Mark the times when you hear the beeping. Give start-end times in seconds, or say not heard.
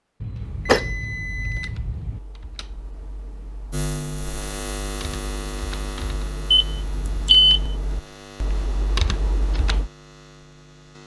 0.2-2.2, 6.5-7.6.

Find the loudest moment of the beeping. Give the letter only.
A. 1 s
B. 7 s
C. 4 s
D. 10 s
B.